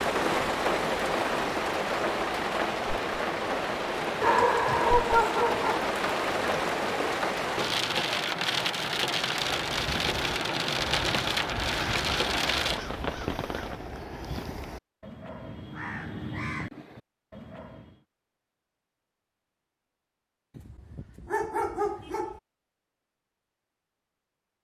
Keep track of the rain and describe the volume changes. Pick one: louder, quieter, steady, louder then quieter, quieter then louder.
steady.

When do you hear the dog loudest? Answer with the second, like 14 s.
5 s.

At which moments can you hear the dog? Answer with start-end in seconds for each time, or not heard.
4.2-5.8, 20.6-22.4.